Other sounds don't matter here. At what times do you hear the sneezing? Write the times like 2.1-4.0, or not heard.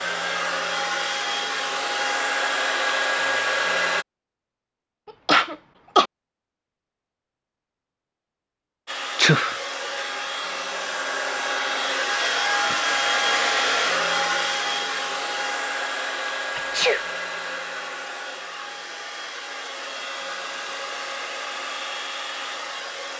5.2-6.0, 9.2-9.6, 16.6-17.0.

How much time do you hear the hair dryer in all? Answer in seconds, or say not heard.
18 s.